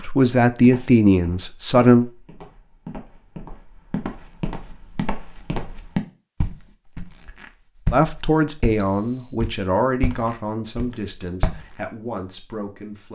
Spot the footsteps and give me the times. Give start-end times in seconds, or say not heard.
0.6-11.7.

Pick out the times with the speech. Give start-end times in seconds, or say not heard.
0.0-2.0, 7.9-13.0.